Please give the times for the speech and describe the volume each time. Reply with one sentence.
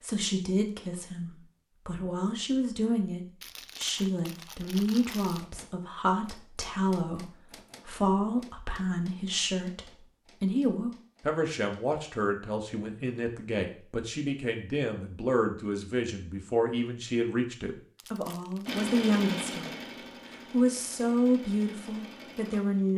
The speech can be heard from 0.0 to 19.8 s, at a steady volume; and briefly from 20.5 to 22.9 s.